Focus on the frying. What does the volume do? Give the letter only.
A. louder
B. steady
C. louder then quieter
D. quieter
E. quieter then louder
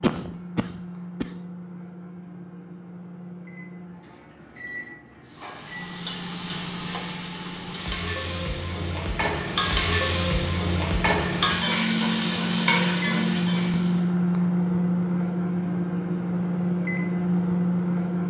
A.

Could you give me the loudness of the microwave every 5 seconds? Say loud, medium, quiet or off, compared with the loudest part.
quiet, quiet, loud, loud.